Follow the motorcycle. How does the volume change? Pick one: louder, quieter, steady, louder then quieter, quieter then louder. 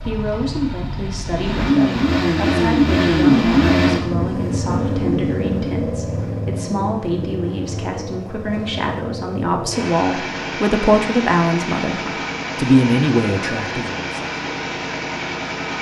quieter.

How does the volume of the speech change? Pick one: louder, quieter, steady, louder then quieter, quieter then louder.
louder.